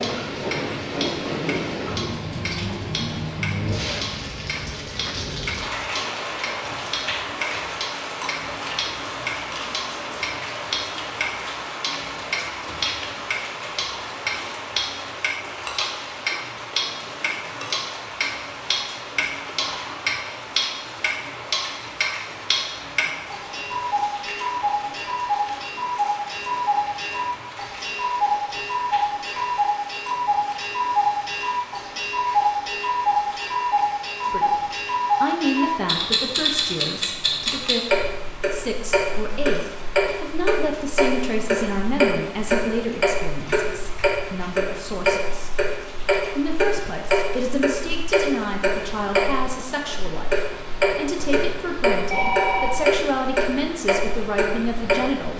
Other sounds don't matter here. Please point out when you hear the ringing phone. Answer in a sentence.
The ringing phone can be heard from 51.1 to 52.9 s.